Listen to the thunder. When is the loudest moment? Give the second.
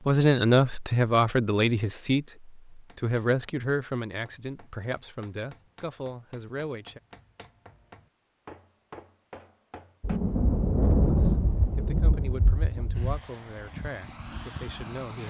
11 s.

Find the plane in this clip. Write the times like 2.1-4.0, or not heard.
12.9-15.2.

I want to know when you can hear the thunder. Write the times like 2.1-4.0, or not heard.
10.0-13.2.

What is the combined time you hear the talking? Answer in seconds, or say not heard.
11 s.